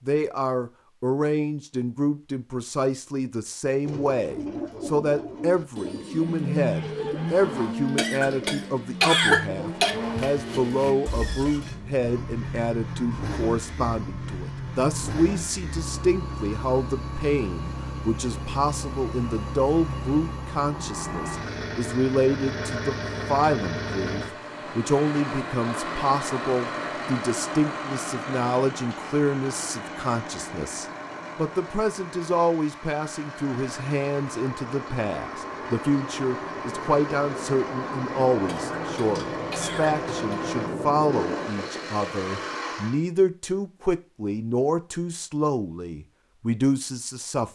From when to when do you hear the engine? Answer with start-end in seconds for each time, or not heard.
6.0-43.0.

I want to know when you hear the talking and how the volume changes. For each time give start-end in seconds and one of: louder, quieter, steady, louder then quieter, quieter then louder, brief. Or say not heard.
0.1-47.5 steady.